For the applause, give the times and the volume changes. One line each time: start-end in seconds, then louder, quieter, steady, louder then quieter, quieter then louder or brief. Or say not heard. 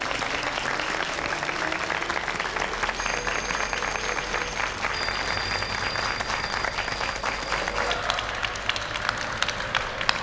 0.0-10.1 steady.